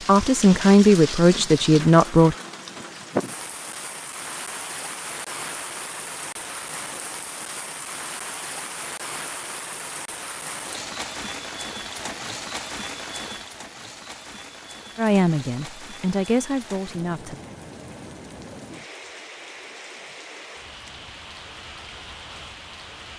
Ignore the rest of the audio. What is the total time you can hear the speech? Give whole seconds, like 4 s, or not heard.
5 s.